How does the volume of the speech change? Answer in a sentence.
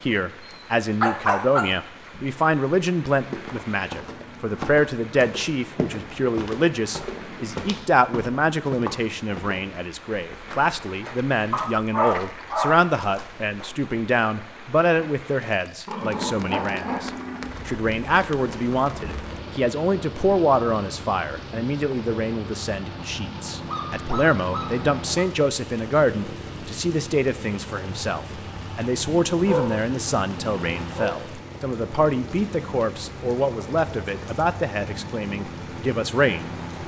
The loudness of the speech stays about the same.